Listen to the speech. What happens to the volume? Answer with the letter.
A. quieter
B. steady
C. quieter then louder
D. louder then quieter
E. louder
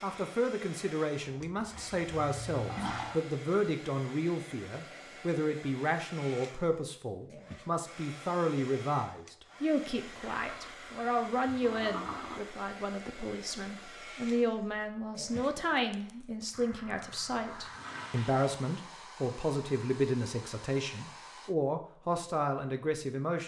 B.